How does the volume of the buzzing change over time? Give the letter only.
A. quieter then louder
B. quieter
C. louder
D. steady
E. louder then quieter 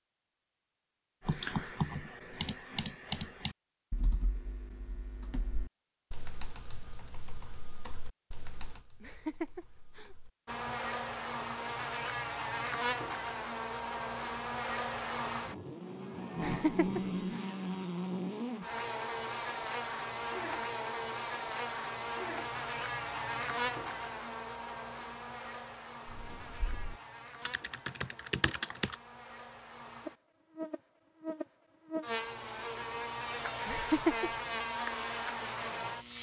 A.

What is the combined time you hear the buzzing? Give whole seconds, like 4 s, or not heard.
26 s.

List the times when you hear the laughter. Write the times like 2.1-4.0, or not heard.
9.0-10.2, 16.4-17.4, 33.6-34.3.